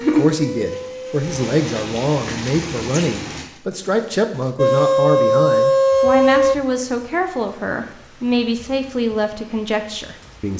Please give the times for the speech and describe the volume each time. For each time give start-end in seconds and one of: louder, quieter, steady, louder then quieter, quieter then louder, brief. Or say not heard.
0.0-10.5 steady.